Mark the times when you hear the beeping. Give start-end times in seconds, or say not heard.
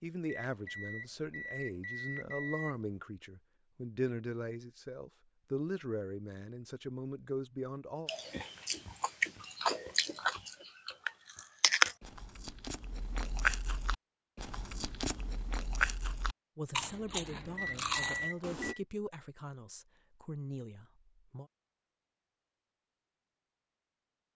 0.5-2.9, 17.6-18.8.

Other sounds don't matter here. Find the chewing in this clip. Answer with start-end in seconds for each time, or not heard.
8.1-18.8.